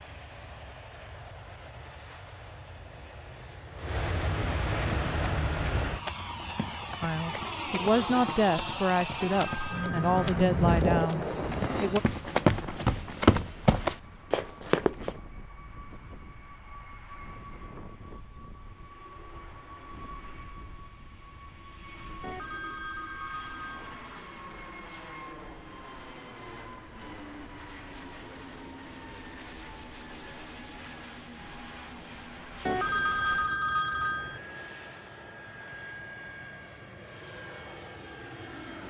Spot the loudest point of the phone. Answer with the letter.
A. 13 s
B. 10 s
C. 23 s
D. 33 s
D.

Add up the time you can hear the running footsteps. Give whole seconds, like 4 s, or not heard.
10 s.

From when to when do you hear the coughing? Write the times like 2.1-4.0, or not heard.
not heard.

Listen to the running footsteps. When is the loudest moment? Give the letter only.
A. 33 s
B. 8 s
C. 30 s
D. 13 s
D.